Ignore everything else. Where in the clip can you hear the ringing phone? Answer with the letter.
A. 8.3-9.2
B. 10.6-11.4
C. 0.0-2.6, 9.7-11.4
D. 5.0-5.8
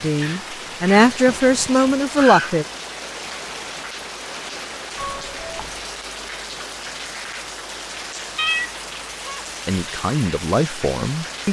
D.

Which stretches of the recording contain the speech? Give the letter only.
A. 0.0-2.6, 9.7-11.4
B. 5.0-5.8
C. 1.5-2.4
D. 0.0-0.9
A.